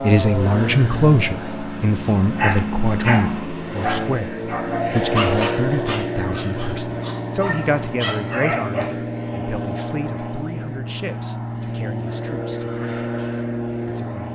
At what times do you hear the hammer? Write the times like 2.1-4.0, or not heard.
not heard.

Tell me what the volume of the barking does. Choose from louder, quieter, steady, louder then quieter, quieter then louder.
quieter then louder.